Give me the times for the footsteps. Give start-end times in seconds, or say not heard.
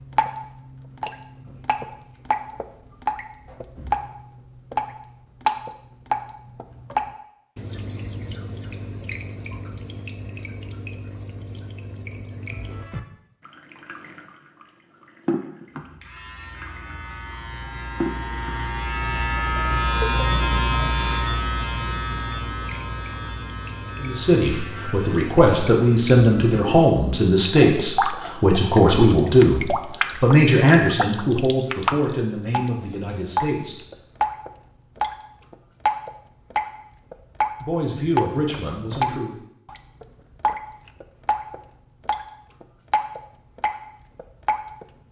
not heard.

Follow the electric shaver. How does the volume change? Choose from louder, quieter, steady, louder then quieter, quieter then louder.
louder then quieter.